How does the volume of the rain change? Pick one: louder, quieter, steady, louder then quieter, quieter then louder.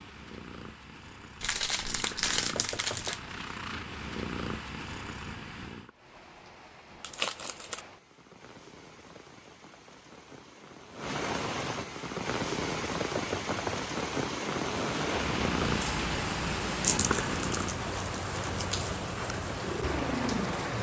louder.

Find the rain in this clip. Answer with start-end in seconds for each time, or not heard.
5.9-20.7.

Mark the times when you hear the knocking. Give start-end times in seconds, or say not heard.
2.5-3.2, 13.1-13.9.